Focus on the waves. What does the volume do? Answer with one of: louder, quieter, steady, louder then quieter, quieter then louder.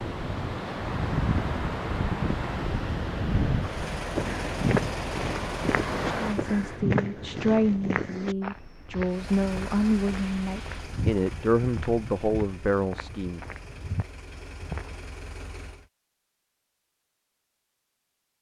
quieter.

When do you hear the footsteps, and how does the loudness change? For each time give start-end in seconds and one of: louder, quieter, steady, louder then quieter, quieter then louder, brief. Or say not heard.
3.2-15.1 quieter.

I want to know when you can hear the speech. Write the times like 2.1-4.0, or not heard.
6.2-13.4.